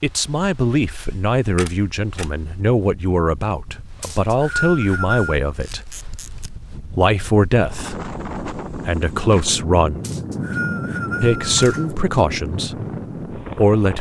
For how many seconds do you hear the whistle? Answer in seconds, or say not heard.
3 s.